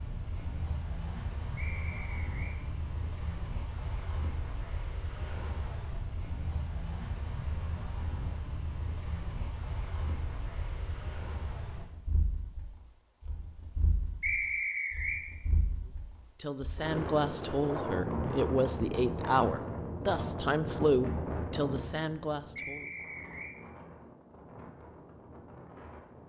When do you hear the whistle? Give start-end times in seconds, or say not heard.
1.6-2.5, 14.2-15.2, 22.6-23.6.